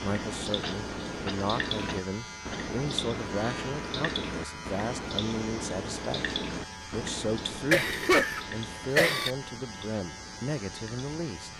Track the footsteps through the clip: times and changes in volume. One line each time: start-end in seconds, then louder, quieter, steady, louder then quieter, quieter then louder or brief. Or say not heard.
not heard.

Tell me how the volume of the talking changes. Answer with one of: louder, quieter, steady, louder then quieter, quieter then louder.
steady.